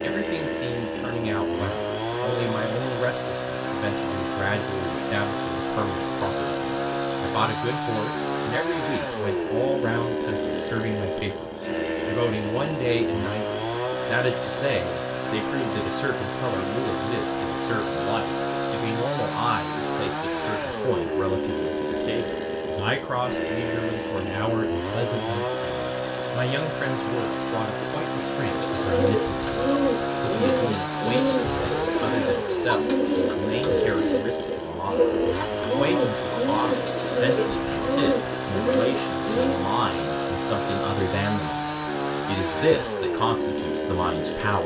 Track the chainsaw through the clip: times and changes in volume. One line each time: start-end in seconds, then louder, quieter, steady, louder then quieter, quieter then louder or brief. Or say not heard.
0.0-44.6 steady.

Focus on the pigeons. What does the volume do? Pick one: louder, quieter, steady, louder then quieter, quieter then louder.
steady.